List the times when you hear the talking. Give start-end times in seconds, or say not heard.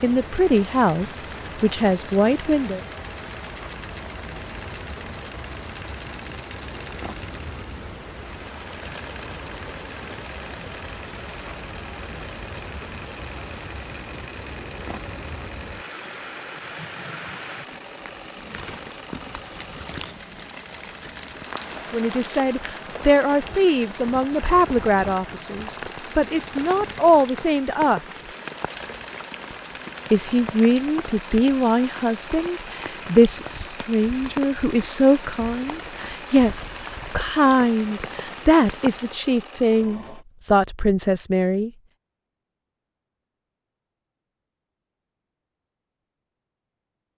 0.0-2.8, 21.9-28.2, 30.1-41.7.